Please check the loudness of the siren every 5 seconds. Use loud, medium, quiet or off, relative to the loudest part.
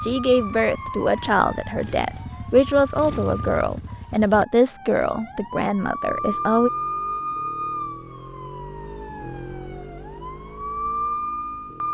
medium, loud, loud.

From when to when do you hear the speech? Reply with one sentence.
You can hear the speech from 0.0 to 6.7 s.